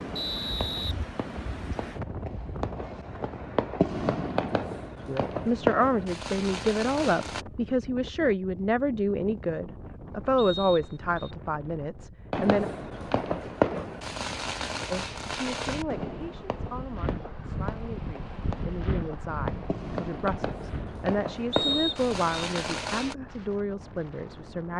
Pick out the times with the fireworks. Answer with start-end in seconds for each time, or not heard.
0.0-7.5, 12.3-23.1.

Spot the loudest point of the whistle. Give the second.
22 s.